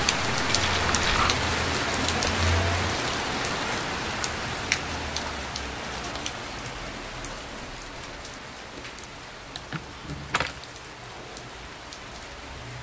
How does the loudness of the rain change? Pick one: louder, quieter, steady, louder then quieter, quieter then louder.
quieter.